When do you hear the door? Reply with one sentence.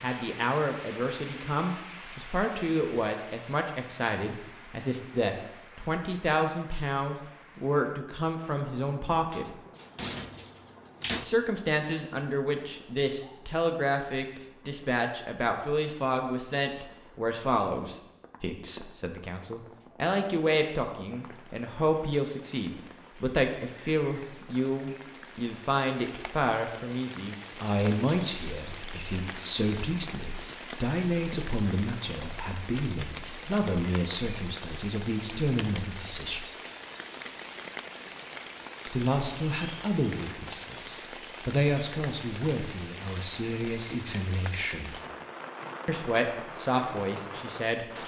The door can be heard from 9.3 to 11.2 s.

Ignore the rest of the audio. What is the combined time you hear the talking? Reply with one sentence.
The talking can be heard for 43 seconds in total.